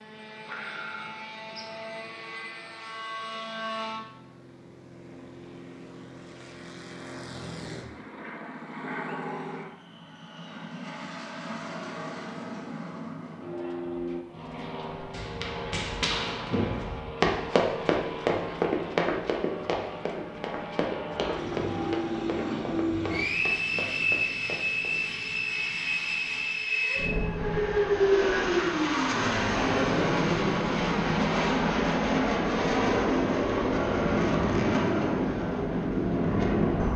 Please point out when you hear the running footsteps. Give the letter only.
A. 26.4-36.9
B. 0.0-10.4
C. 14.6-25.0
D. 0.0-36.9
C.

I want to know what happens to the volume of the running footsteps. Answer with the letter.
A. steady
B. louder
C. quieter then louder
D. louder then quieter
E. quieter
D.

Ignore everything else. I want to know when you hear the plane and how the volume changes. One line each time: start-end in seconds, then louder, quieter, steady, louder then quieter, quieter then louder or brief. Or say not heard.
0.0-36.9 louder.